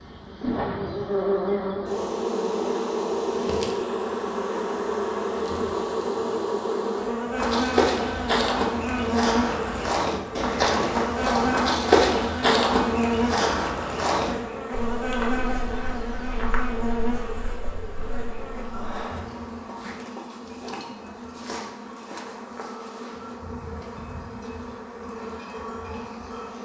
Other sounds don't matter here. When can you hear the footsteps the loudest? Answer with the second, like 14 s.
12 s.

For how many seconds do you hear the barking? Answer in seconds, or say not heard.
not heard.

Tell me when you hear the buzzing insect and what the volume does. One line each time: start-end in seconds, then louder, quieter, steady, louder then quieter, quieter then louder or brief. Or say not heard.
0.0-26.6 quieter.